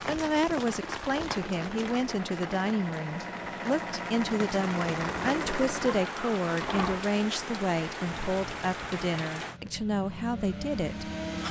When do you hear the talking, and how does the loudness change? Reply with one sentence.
The talking can be heard from 0.1 to 11.4 s, at a steady volume.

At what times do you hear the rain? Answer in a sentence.
The rain can be heard from 0.0 to 9.6 s.